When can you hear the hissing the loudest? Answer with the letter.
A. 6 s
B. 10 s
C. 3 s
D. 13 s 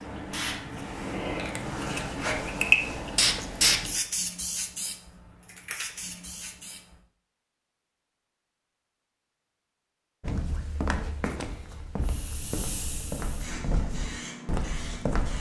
C.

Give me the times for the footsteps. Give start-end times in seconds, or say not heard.
10.2-15.3.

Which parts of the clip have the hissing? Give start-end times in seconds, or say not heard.
0.0-6.8, 12.0-15.3.